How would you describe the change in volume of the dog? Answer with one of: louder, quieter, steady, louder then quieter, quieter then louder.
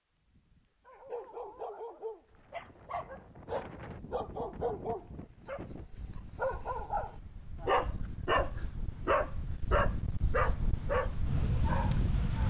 louder.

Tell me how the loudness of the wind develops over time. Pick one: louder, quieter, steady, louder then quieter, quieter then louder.
louder.